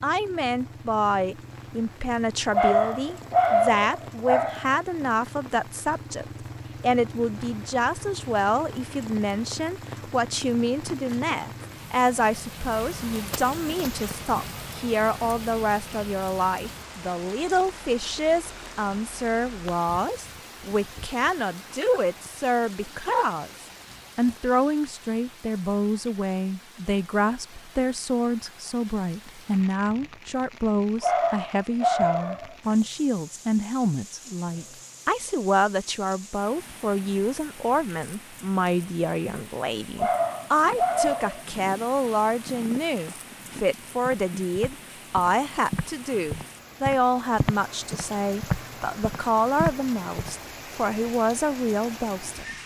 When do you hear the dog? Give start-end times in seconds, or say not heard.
2.5-4.7, 31.0-32.5, 40.0-41.5.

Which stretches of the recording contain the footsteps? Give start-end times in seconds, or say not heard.
40.6-50.4.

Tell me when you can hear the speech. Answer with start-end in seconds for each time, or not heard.
0.0-52.5.